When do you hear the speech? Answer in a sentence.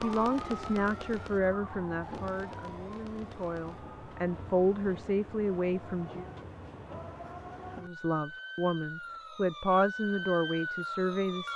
The speech can be heard from 0.0 to 6.2 s and from 7.8 to 11.5 s.